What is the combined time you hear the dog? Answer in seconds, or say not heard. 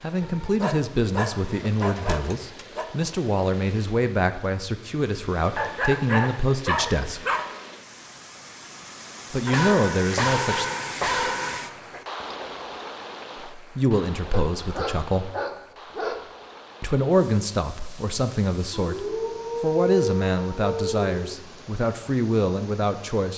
12 s.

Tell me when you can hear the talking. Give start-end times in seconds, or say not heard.
0.0-7.2, 9.3-10.7, 13.6-15.3, 16.8-23.3.